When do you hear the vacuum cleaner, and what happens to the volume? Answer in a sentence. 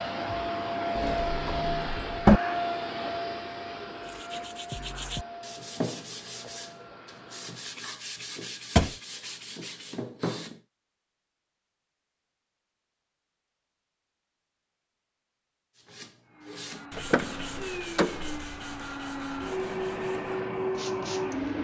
You can hear the vacuum cleaner from 0.0 to 7.8 s, getting quieter; and from 16.2 to 21.6 s, getting louder.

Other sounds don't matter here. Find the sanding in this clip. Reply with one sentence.
You can hear the sanding from 4.0 to 10.6 s and from 15.8 to 21.6 s.